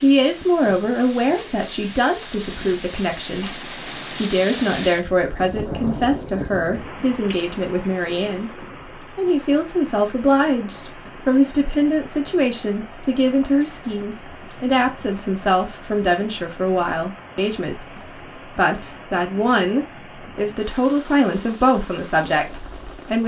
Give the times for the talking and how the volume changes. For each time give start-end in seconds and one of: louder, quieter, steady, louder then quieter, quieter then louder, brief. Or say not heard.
0.0-23.2 steady.